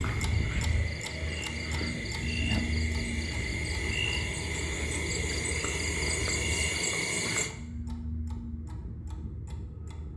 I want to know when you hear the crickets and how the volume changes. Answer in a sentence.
You can hear the crickets from 0.0 to 7.5 s, getting louder.